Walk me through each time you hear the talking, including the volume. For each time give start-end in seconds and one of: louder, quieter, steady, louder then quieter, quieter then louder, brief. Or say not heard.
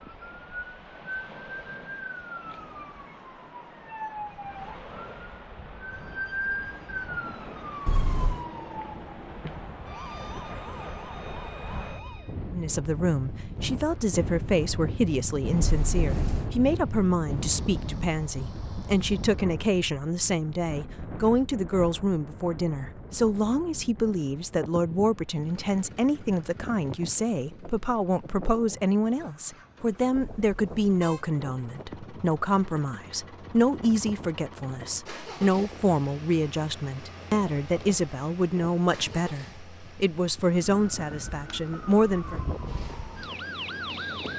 12.5-42.4 steady.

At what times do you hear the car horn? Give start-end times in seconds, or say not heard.
7.8-8.4, 15.6-16.5, 30.1-31.2.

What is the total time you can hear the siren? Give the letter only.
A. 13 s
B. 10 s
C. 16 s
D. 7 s
C.